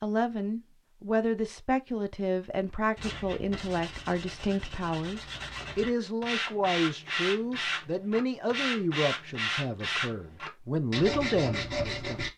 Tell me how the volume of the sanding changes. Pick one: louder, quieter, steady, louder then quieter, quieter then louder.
louder.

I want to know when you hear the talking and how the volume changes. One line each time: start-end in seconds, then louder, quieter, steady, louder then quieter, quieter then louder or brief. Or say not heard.
0.0-12.2 steady.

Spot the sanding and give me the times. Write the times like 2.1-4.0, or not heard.
3.0-12.3.